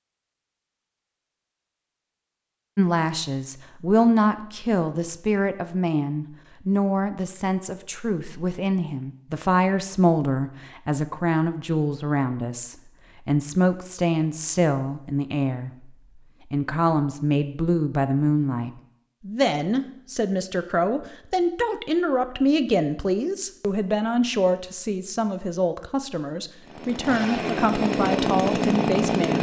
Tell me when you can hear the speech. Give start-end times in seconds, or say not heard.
2.8-15.9, 16.5-29.3.